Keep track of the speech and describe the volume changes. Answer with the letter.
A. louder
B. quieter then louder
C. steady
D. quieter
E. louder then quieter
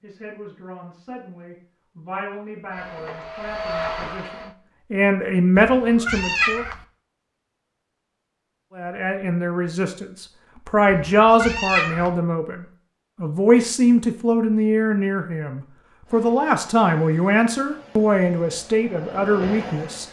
A.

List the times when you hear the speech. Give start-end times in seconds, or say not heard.
0.0-6.7, 8.8-20.0.